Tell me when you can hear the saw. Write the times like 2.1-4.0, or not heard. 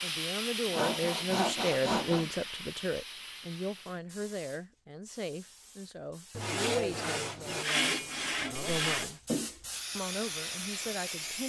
0.7-2.3, 6.3-9.1.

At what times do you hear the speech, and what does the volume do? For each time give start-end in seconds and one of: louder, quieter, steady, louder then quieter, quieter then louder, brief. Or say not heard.
0.0-9.2 quieter
9.9-11.4 brief.